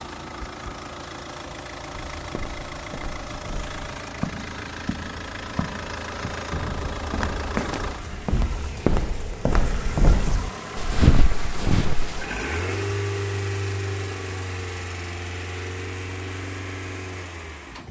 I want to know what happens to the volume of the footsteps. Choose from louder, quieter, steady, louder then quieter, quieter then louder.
louder.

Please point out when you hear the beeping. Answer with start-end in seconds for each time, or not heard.
not heard.